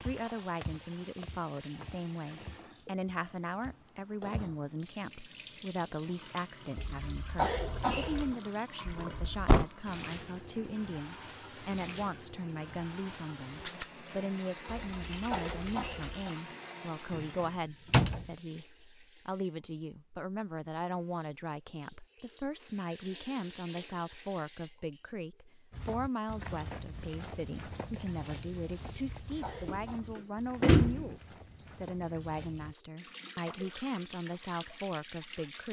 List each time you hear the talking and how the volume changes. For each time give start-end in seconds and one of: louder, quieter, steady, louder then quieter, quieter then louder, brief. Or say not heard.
0.1-35.6 steady.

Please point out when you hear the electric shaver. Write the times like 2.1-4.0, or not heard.
not heard.